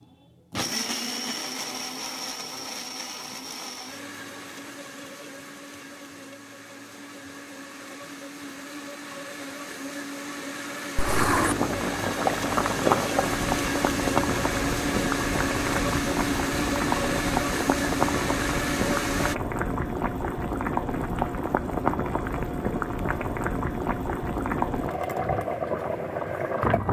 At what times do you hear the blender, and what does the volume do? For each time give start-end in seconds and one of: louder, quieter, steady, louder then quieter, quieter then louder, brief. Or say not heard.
0.0-19.4 quieter then louder.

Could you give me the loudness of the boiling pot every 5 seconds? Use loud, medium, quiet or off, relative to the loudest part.
off, off, loud, loud, loud, loud.